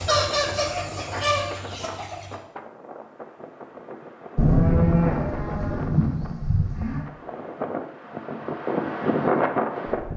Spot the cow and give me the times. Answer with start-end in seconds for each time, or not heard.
4.3-7.0.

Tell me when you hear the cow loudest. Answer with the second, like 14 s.
5 s.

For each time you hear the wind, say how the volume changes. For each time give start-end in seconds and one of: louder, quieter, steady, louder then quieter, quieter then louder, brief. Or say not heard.
0.1-10.1 louder.